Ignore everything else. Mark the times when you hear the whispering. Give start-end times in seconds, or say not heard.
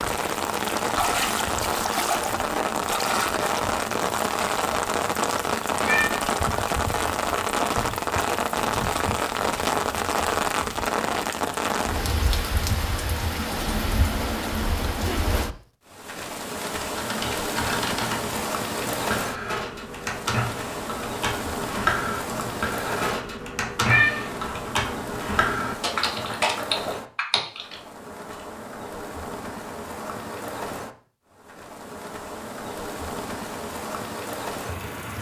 not heard.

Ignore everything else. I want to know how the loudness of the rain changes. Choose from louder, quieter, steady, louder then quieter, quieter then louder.
quieter.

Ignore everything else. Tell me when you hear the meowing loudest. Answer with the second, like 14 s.
24 s.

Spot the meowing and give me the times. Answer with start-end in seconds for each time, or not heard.
5.8-6.2, 23.8-24.3.